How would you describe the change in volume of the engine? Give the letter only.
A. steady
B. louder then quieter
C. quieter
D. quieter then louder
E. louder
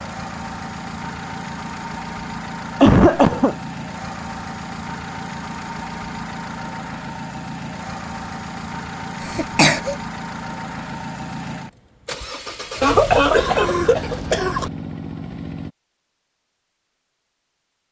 A.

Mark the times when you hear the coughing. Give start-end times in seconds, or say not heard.
2.8-3.5, 9.2-9.9, 12.8-14.7.